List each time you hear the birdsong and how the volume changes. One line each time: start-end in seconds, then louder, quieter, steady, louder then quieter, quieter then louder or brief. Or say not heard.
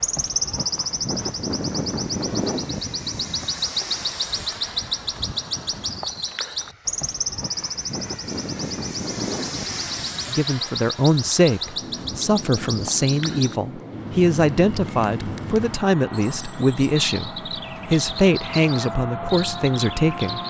0.0-20.4 quieter.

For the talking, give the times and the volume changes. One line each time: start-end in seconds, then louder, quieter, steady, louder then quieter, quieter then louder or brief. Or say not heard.
10.3-20.4 steady.